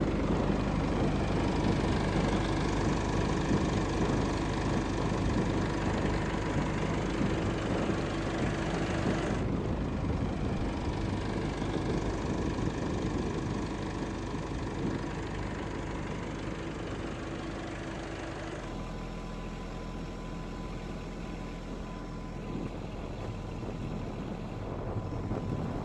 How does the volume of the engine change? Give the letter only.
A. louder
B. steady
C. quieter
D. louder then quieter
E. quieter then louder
C.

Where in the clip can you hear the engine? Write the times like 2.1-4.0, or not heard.
0.0-25.8.